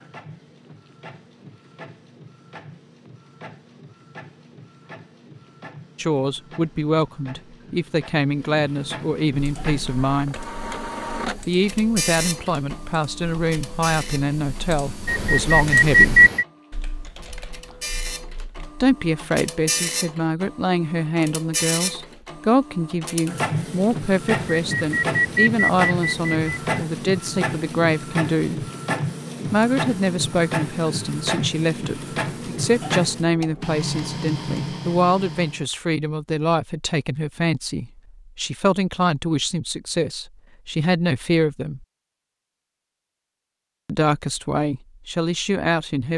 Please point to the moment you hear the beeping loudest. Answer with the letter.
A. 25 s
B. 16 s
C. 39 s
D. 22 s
B.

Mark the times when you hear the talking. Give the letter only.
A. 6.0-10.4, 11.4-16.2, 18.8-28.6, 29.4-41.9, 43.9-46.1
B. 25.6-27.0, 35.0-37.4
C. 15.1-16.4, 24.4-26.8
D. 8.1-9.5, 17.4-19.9
A.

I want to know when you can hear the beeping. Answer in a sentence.
You can hear the beeping from 15.1 to 16.4 s and from 24.4 to 26.8 s.